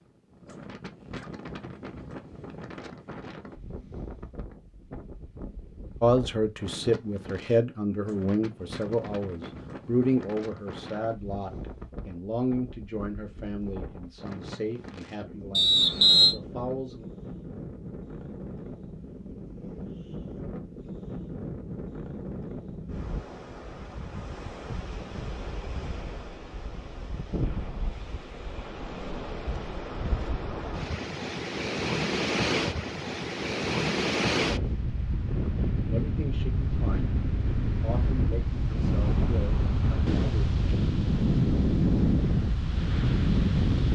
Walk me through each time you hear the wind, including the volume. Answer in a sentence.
You can hear the wind from 0.0 to 43.8 s, getting louder.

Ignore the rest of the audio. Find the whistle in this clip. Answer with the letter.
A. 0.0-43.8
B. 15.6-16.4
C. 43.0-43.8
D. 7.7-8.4
B.